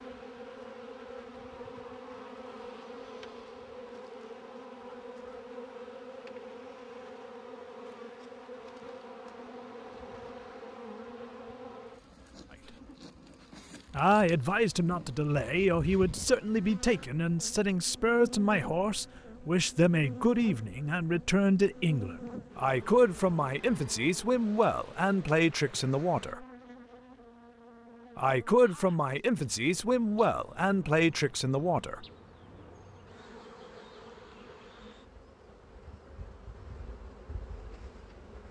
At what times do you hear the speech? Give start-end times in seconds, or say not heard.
13.9-26.4, 28.1-32.0.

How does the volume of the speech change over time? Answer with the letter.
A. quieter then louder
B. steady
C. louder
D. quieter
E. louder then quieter
B.